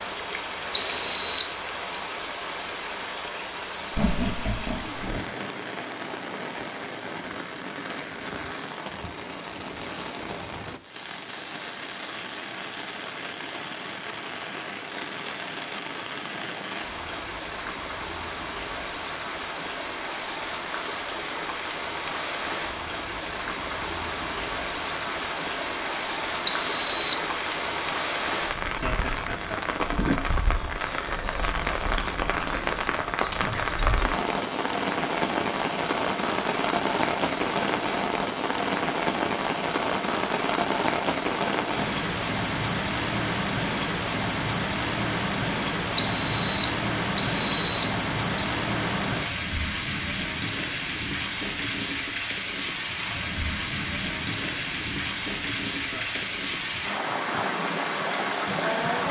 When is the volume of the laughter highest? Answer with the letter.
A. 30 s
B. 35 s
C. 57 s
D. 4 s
D.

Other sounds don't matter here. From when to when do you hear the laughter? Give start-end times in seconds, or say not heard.
3.9-5.2, 28.6-29.9, 55.8-56.3.